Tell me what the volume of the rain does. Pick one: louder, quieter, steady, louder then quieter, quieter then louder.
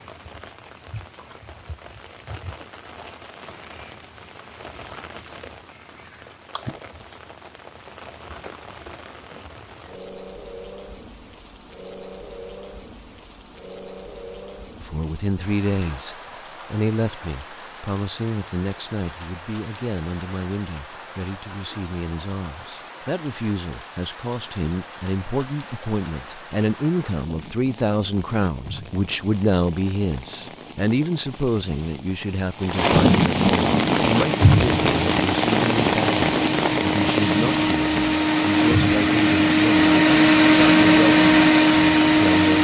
louder.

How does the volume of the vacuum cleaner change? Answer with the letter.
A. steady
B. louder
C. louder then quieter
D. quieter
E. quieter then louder
B.